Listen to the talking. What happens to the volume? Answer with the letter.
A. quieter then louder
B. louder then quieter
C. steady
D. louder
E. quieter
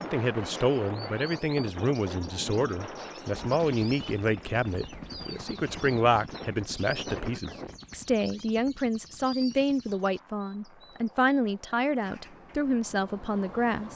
C.